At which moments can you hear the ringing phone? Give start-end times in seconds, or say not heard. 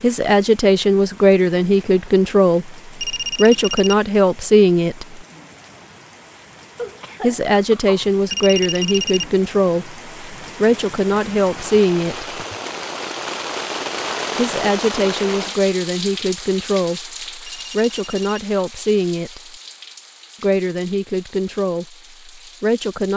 3.0-4.0, 8.3-9.3, 17.4-18.4.